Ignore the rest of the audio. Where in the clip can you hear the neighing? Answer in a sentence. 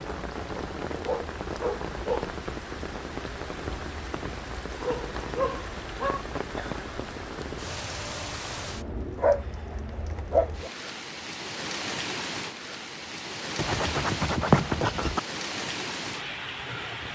The neighing can't be heard in this clip.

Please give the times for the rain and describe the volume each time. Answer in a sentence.
The rain can be heard from 0.0 to 17.0 s, at a steady volume.